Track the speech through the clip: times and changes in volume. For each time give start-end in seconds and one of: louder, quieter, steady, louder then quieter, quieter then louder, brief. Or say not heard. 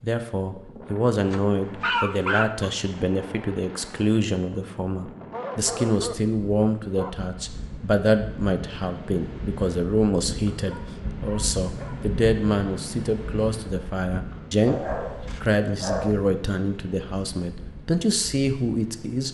0.0-19.2 steady.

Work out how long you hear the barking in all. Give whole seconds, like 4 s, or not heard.
6 s.